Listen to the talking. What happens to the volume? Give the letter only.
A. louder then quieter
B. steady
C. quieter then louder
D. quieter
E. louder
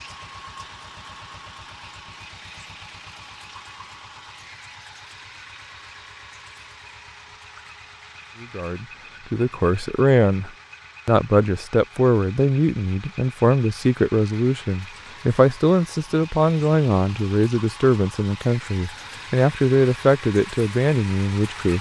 B.